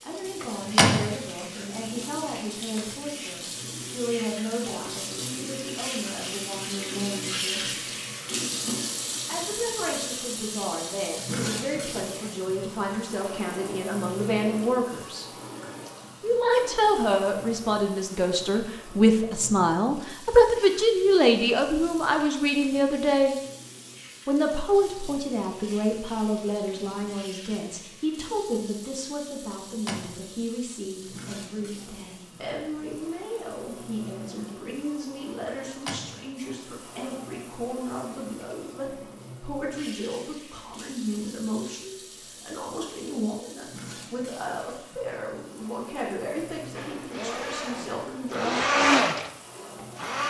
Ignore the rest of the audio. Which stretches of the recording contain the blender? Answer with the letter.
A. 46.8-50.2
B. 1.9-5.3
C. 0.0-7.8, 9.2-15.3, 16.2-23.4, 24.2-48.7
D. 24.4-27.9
A.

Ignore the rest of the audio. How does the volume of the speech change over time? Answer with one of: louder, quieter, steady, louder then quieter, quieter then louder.
louder then quieter.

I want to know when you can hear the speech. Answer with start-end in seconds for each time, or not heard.
0.0-7.8, 9.2-15.3, 16.2-23.4, 24.2-48.7.